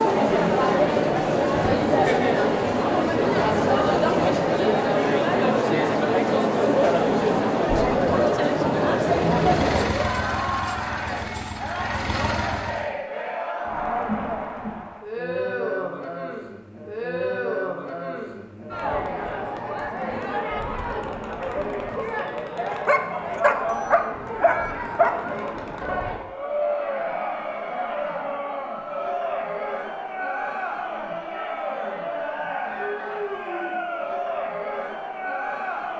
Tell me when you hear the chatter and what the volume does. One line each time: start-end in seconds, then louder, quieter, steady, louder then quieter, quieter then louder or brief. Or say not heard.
0.0-35.9 quieter.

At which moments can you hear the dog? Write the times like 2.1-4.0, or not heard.
22.7-25.3.